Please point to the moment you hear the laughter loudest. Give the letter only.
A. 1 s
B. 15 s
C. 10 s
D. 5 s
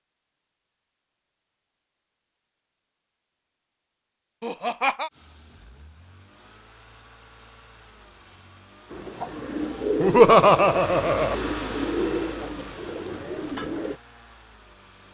C.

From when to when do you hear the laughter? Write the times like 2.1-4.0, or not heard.
4.4-5.1, 10.0-11.3.